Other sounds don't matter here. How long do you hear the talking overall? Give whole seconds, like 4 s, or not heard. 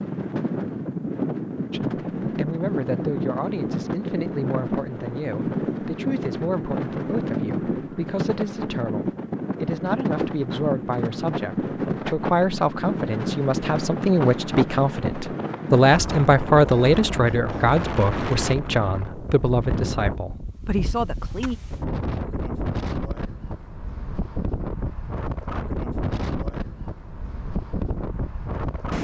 20 s.